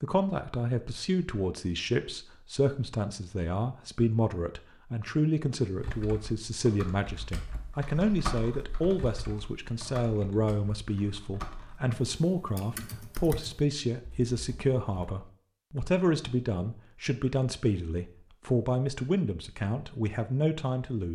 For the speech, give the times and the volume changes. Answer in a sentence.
You can hear the speech from 0.0 to 21.1 s, at a steady volume.